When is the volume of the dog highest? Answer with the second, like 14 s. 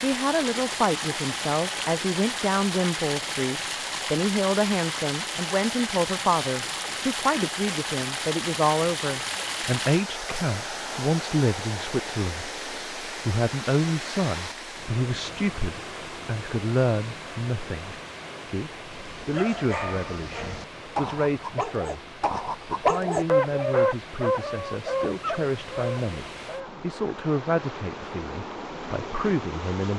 23 s.